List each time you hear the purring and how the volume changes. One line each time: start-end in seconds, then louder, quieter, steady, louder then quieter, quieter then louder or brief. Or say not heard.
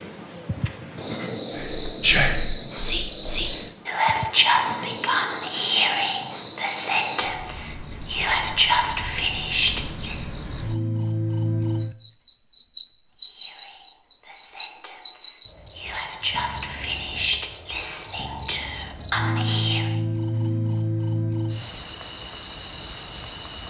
not heard.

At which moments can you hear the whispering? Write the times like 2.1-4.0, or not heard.
1.6-10.3, 13.2-19.9.